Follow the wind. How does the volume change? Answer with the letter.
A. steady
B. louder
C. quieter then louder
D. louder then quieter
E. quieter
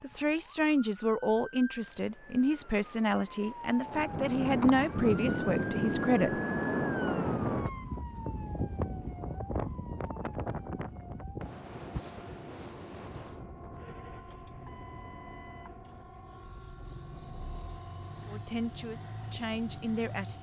E.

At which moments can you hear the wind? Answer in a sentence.
You can hear the wind from 3.9 to 20.3 s.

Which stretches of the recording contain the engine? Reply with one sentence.
The engine can be heard from 13.8 to 20.3 s.